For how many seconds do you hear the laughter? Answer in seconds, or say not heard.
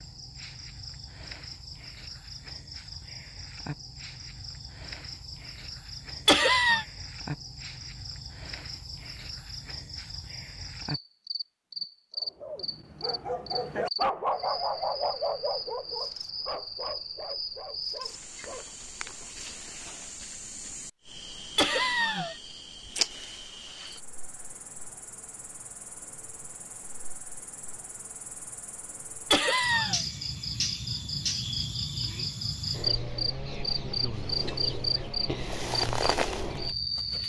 2 s.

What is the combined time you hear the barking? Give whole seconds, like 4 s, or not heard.
7 s.